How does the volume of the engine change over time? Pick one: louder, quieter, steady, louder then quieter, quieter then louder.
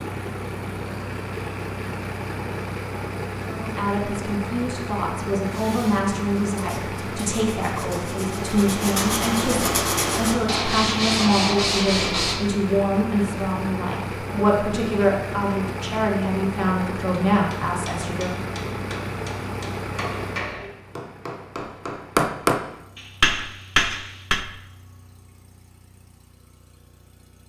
quieter.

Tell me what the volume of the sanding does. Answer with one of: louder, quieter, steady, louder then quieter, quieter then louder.
louder.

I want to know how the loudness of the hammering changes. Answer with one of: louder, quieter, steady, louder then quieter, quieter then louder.
louder.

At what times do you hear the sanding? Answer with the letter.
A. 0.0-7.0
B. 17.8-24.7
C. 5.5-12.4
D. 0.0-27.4
C.